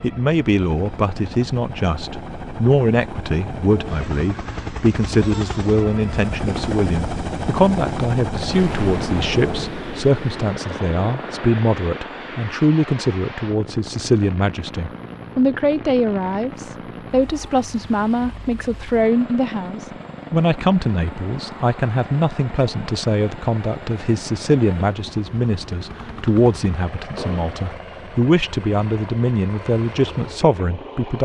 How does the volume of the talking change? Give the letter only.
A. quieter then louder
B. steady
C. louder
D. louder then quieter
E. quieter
B.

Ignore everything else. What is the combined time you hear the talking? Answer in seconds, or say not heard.
31 s.